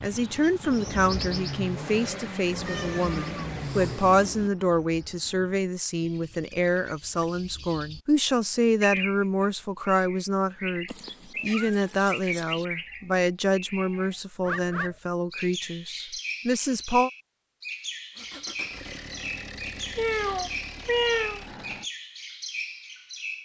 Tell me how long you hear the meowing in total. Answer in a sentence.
The meowing can be heard for 5 seconds in total.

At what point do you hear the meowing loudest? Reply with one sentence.
The loudest moment of the meowing is at 21 seconds.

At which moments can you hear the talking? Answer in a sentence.
You can hear the talking from 0.0 to 17.1 s.